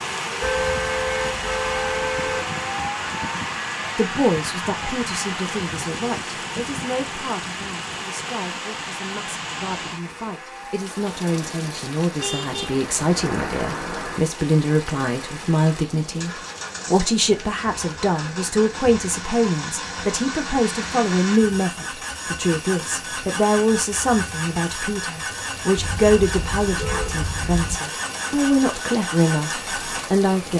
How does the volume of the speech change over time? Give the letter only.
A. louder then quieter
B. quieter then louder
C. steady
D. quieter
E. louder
E.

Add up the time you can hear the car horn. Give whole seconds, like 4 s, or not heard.
6 s.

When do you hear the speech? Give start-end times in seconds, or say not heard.
4.0-30.5.